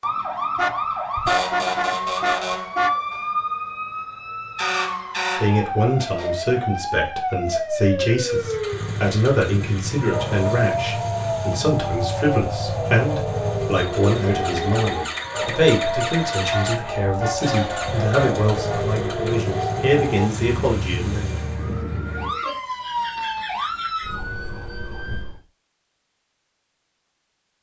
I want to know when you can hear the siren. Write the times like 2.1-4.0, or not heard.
0.0-25.4.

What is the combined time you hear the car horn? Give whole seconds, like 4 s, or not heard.
5 s.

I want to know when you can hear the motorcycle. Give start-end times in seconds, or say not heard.
8.2-21.9.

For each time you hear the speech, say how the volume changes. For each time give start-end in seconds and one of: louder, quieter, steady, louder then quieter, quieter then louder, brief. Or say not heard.
5.3-21.3 steady.